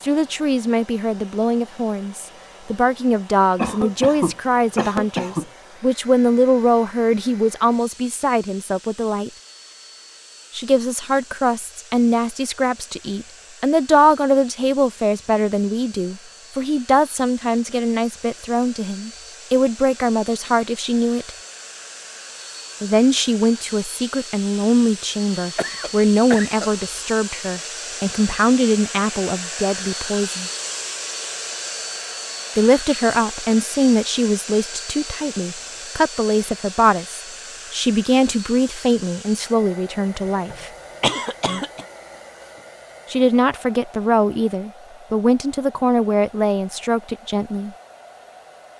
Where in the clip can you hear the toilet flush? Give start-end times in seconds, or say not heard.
not heard.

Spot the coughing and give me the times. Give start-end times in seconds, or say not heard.
3.5-5.5, 25.6-26.7, 40.5-41.9.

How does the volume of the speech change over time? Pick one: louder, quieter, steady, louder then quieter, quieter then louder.
steady.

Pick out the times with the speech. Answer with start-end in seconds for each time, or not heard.
0.0-9.3, 10.5-21.3, 22.8-30.5, 32.5-40.7, 43.1-47.7.